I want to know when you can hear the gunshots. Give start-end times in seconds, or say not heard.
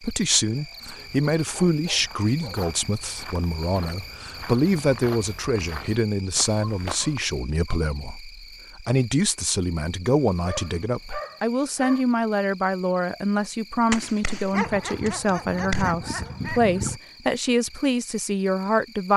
13.9-15.8.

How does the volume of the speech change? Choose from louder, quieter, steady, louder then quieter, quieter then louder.
steady.